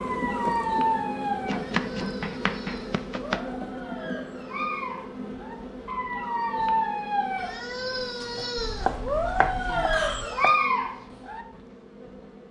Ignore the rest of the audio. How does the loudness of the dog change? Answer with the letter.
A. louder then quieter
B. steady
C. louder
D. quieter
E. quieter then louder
E.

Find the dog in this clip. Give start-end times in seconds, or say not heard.
0.0-11.4.